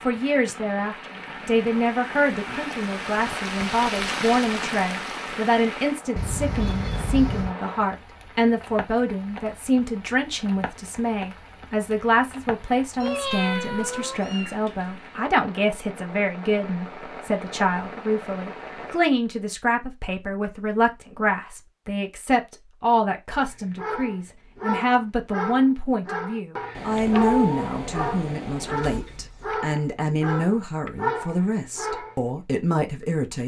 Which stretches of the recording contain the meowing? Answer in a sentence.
The meowing can be heard from 6.2 to 7.5 s, from 13.0 to 14.6 s and from 26.8 to 28.9 s.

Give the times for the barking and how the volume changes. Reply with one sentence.
You can hear the barking from 23.3 to 32.2 s, at a steady volume.